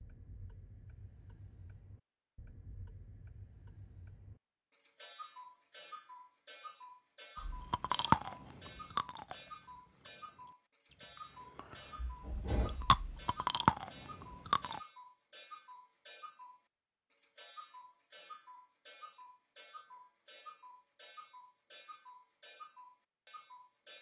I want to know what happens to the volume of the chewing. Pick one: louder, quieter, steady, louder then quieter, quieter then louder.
quieter then louder.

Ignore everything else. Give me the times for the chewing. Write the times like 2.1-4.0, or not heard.
7.3-14.8.